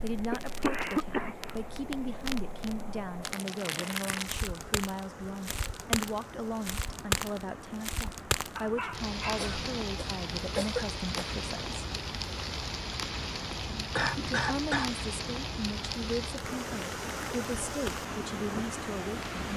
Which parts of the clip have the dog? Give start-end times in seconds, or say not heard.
8.6-9.5.